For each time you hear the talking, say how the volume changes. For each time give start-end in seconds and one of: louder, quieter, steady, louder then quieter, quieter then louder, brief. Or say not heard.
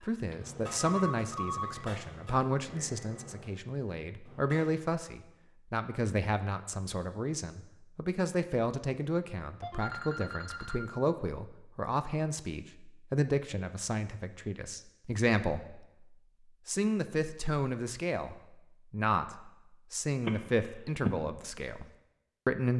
0.0-22.7 steady.